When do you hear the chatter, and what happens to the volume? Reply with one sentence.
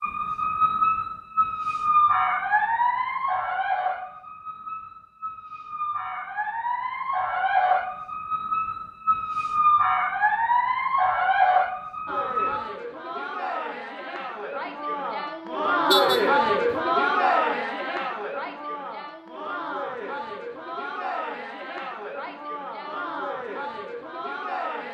The chatter can be heard from 12.1 to 24.8 s, getting louder then quieter.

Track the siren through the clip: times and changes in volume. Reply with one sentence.
You can hear the siren from 0.0 to 12.7 s, getting quieter then louder.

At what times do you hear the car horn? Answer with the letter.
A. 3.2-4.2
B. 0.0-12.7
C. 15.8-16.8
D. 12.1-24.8
C.